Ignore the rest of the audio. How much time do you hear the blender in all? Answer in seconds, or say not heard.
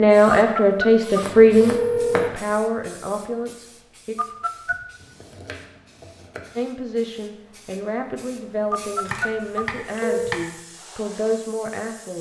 not heard.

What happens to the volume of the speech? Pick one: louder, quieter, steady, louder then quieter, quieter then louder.
quieter.